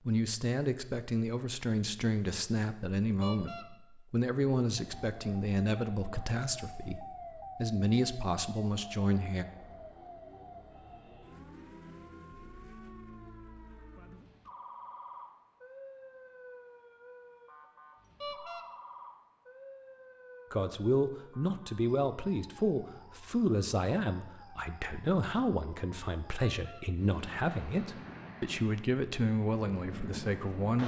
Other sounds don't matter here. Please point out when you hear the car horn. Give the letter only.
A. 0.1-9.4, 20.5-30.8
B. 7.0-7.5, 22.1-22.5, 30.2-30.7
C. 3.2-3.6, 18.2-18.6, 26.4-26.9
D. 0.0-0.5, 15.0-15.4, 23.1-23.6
C.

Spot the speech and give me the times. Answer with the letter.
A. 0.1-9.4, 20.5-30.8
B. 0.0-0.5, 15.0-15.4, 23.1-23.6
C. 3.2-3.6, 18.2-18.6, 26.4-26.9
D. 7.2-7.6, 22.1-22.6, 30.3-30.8
A.